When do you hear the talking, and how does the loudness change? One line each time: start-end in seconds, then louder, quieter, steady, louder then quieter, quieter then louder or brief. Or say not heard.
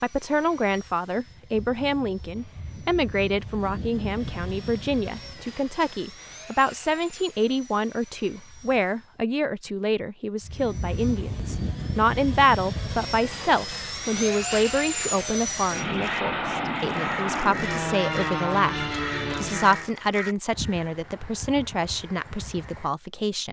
0.0-23.4 steady.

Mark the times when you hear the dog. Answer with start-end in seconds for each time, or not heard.
not heard.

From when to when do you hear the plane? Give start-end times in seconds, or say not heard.
0.0-9.3, 10.4-19.9.